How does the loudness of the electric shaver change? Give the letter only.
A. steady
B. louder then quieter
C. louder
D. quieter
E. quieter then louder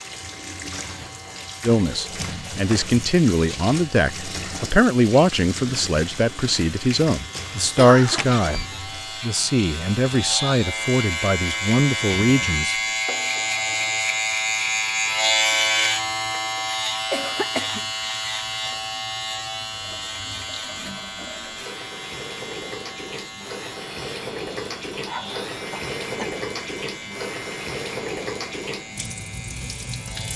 B.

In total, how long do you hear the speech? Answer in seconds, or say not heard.
11 s.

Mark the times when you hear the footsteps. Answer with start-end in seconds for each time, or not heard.
not heard.